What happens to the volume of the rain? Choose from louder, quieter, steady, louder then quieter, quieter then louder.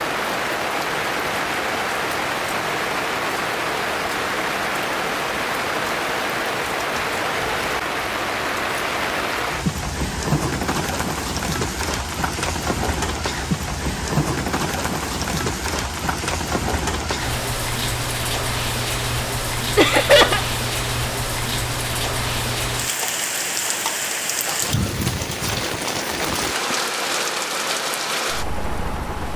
steady.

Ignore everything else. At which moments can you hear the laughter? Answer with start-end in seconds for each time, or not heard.
19.8-20.4.